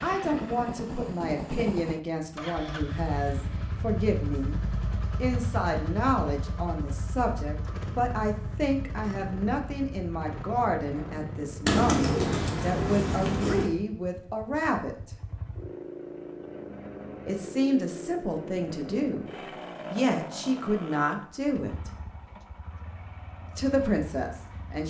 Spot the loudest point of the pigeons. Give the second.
12 s.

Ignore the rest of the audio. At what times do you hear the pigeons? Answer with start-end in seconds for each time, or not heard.
11.7-13.7.